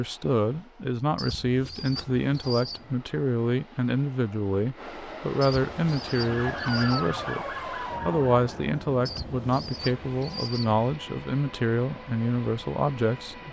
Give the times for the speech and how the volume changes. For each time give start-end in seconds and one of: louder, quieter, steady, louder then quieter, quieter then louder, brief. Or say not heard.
0.0-13.4 steady.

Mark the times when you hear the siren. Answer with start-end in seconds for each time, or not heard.
6.1-8.7.